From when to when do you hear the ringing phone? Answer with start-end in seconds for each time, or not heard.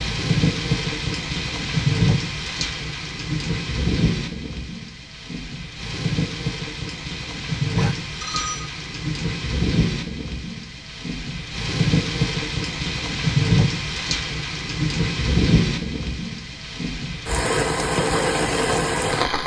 7.8-8.7.